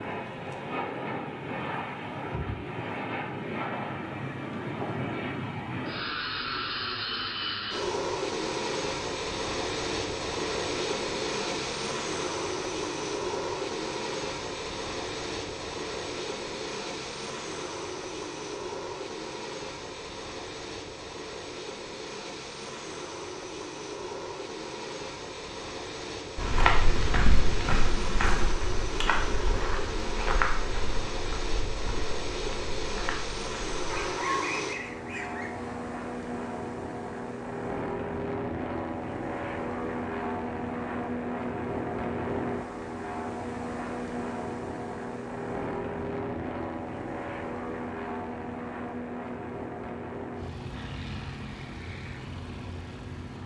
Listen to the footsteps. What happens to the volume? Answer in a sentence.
The volume of the footsteps goes down.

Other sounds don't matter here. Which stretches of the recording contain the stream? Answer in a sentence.
You can't hear the stream here.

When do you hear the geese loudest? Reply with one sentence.
The volume of the geese peaks at 34 seconds.